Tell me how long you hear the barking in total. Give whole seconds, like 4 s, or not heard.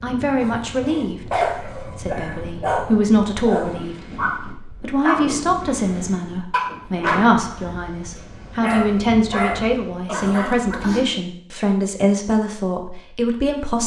10 s.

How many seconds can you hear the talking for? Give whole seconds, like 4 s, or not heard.
14 s.